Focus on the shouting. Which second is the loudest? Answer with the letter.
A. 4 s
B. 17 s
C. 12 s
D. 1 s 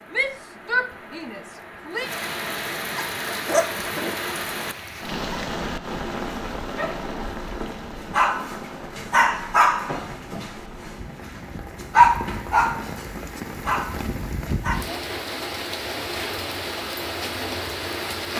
D.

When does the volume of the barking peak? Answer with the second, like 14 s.
12 s.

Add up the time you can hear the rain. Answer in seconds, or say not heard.
18 s.